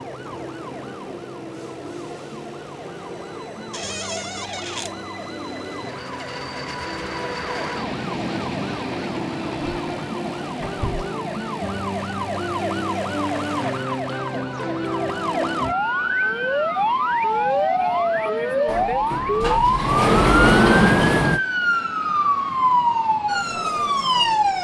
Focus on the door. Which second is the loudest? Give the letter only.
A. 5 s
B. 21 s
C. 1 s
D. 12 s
B.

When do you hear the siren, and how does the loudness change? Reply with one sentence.
The siren can be heard from 0.0 to 24.6 s, getting louder.